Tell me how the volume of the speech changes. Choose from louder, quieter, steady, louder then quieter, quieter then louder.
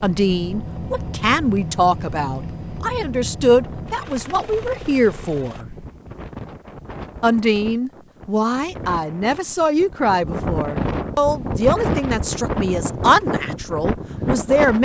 steady.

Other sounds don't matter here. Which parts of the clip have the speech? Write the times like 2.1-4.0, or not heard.
0.0-5.7, 7.2-14.7.